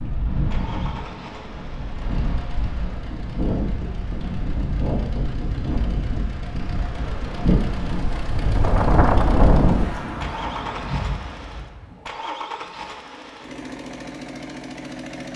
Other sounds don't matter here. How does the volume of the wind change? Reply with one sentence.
The volume of the wind goes up.